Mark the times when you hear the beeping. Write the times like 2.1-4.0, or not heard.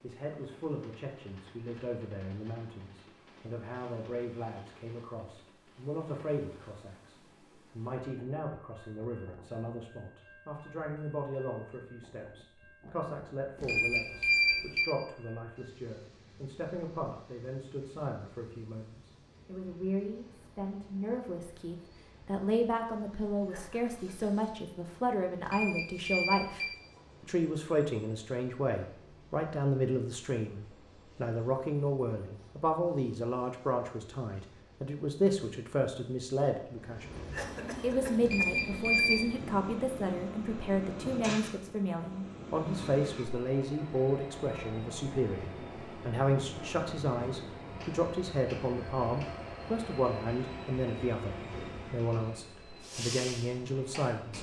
13.6-14.8, 25.4-26.7, 38.2-39.2.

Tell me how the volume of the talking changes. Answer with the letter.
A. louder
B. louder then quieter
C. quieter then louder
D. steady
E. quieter
A.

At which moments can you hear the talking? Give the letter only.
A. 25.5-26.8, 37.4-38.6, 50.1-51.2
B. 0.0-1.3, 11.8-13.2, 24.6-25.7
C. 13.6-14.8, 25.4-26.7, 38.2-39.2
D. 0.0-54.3
D.